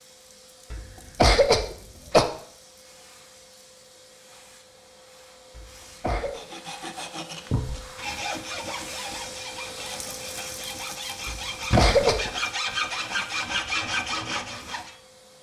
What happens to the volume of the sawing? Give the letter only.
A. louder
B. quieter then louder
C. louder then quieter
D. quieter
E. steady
A.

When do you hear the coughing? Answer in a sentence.
You can hear the coughing from 0.7 to 2.2 s, from 5.5 to 6.4 s and from 11.2 to 12.3 s.